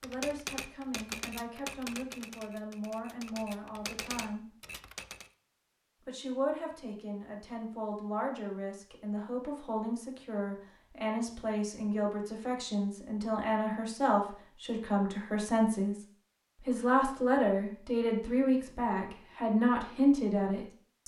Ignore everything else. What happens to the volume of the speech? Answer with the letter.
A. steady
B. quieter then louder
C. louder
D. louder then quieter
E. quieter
C.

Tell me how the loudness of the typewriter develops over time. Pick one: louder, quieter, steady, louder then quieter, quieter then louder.
quieter then louder.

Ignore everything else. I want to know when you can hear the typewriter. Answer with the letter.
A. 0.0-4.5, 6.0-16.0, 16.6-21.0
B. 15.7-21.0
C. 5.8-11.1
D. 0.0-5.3
D.